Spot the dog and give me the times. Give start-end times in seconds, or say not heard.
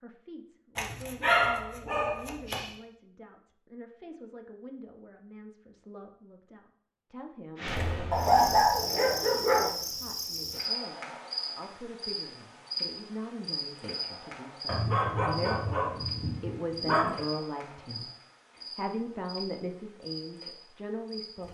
0.8-2.7, 8.1-9.7, 14.7-17.2.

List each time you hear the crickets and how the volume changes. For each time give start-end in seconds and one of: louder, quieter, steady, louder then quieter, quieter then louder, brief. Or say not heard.
7.5-21.4 quieter.